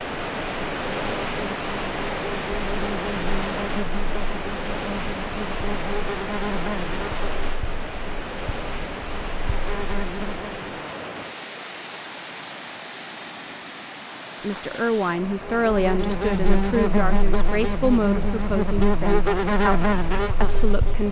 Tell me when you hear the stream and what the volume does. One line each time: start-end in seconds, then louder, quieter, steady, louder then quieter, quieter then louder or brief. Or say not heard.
0.0-21.0 quieter.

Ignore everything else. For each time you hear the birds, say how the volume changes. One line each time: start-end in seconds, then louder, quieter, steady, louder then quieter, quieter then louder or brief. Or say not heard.
not heard.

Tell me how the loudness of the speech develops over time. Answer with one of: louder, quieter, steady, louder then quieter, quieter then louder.
quieter.